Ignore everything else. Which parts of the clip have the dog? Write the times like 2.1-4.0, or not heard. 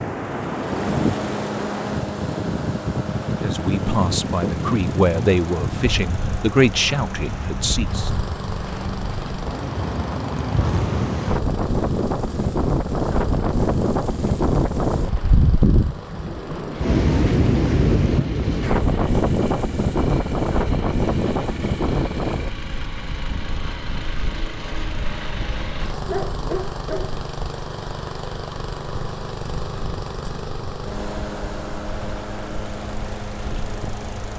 26.1-27.1.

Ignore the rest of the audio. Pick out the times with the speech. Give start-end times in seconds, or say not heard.
3.4-8.1.